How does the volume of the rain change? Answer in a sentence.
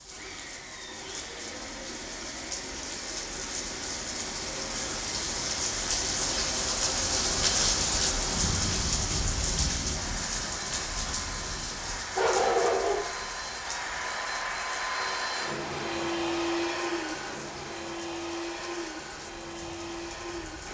The volume of the rain goes up, then down.